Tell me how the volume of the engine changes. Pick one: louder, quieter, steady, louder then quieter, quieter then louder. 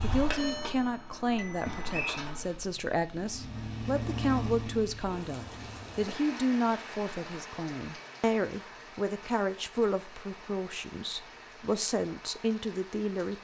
quieter then louder.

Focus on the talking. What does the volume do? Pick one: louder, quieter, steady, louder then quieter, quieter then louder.
steady.